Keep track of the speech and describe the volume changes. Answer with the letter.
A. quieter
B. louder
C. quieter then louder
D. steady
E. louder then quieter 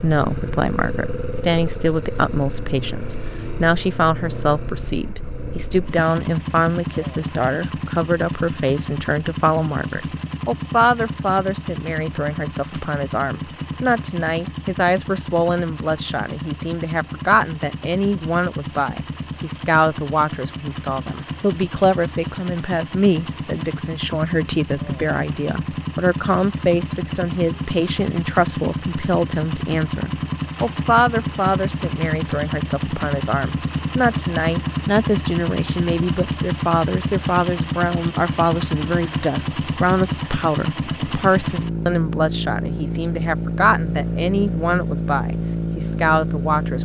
D.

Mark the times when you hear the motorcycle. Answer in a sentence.
You can hear the motorcycle from 0.0 to 46.8 s.